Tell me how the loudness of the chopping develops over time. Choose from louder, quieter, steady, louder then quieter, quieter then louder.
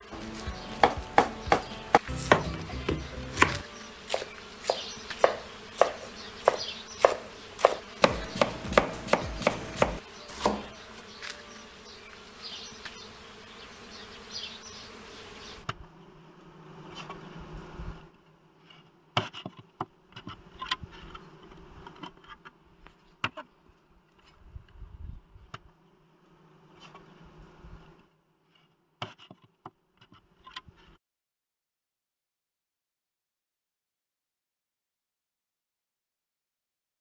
steady.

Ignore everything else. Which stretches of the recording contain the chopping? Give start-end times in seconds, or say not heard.
0.1-10.7.